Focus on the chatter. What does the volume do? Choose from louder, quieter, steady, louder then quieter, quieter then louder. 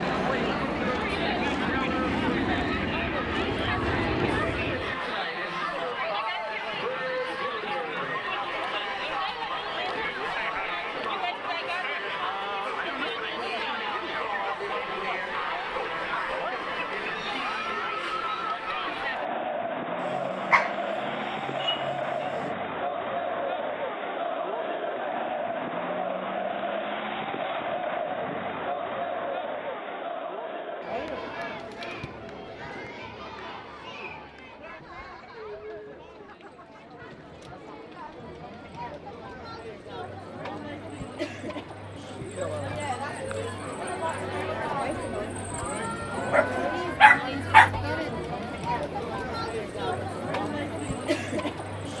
quieter then louder.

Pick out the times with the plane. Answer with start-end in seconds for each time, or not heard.
0.0-5.0.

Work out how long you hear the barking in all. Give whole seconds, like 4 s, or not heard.
4 s.